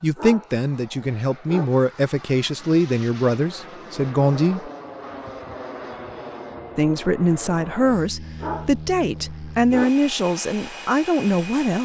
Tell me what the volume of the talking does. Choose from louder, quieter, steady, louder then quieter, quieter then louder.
steady.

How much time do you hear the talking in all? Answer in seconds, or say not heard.
10 s.